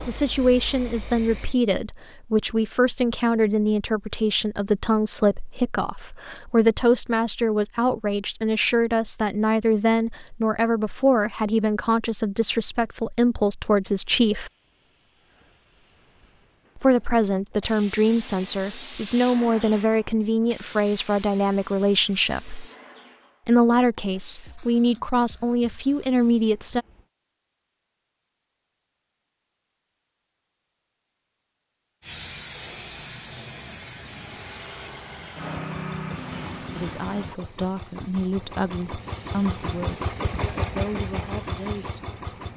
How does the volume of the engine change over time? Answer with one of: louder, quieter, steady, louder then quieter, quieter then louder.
louder.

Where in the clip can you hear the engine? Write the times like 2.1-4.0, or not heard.
34.1-42.5.